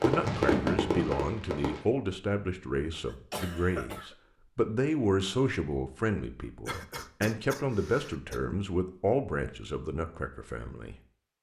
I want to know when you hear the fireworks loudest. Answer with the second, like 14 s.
1 s.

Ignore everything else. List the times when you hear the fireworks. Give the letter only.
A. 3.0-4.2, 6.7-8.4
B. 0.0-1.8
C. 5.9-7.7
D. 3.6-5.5
B.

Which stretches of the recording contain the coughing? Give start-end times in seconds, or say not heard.
3.0-4.2, 6.7-8.4.